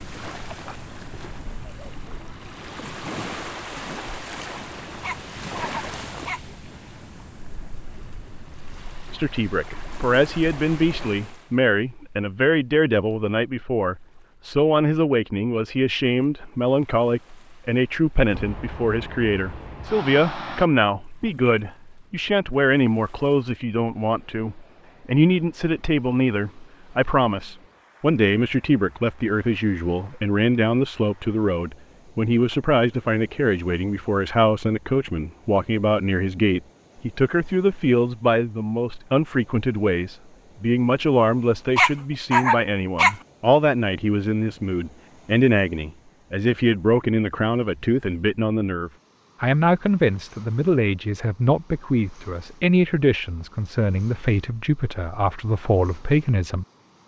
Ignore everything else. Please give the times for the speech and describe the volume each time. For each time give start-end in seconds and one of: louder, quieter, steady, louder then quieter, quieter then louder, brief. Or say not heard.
9.1-56.6 steady.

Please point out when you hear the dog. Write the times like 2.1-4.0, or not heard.
5.0-6.4, 41.8-43.1.